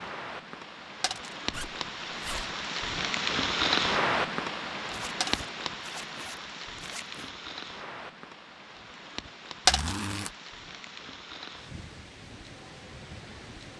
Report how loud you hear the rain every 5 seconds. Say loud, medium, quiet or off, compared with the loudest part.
loud, medium, quiet.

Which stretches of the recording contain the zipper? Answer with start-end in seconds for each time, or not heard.
1.5-2.5, 4.8-7.3, 9.7-10.3.